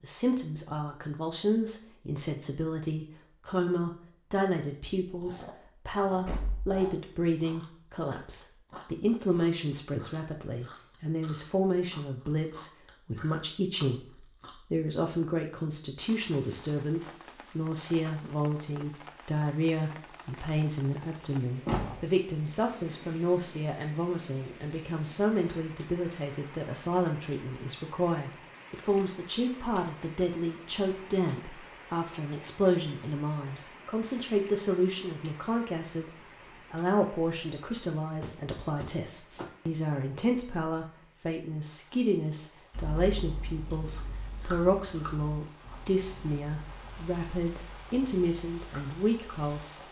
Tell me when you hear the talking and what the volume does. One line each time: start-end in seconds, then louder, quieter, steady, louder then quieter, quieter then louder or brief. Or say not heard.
0.0-49.8 steady.